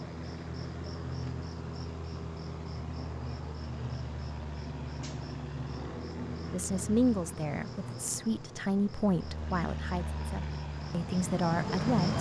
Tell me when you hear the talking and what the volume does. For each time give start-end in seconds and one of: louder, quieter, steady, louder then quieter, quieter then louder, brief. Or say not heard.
6.5-12.1 quieter then louder.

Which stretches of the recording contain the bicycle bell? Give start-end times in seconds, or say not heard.
not heard.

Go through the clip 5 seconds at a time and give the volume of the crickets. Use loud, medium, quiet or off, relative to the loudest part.
medium, medium, loud.